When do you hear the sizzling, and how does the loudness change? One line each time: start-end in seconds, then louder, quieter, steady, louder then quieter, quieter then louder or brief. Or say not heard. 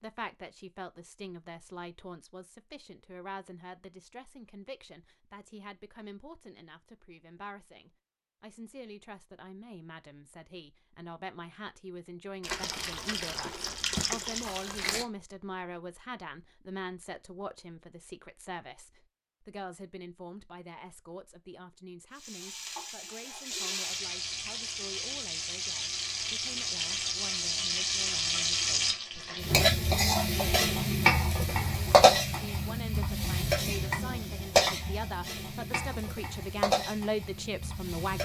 22.1-38.1 louder then quieter.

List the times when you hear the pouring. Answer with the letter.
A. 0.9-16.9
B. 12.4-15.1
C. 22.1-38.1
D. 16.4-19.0
B.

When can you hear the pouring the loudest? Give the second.
14 s.